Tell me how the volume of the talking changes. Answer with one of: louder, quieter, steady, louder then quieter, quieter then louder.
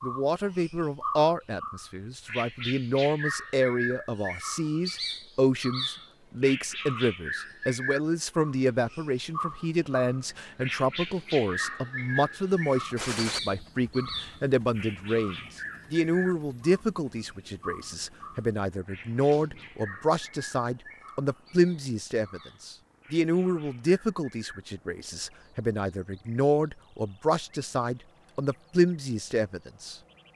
steady.